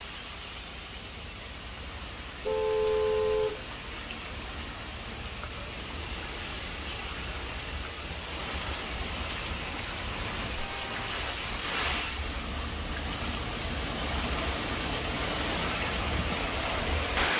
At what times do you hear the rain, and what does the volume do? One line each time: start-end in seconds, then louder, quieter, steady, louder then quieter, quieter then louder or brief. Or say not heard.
0.0-17.3 louder.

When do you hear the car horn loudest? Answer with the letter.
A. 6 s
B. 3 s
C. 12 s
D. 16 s
B.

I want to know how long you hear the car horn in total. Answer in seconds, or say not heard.
2 s.